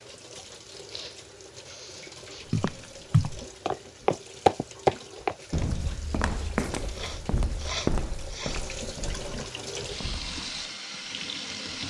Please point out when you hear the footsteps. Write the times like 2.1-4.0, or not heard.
2.5-10.4.